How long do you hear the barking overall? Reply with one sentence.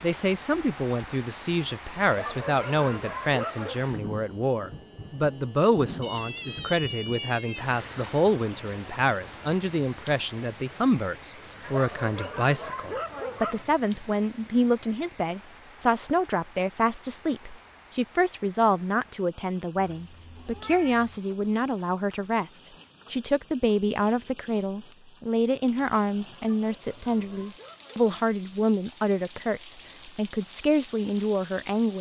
You can hear the barking for 6 seconds altogether.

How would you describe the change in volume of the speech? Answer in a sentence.
The loudness of the speech stays about the same.